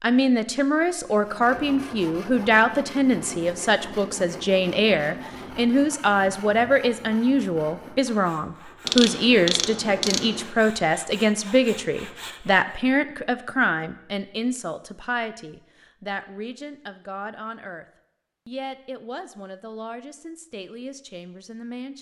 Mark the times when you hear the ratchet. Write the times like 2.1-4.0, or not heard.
8.8-10.6.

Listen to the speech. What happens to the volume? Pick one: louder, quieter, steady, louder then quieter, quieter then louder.
quieter.